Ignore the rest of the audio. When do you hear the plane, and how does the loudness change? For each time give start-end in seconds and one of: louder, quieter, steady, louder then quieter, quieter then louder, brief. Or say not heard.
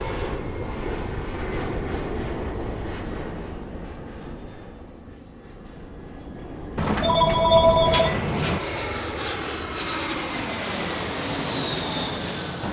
0.0-12.6 quieter then louder.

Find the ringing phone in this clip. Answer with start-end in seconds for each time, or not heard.
6.8-8.6.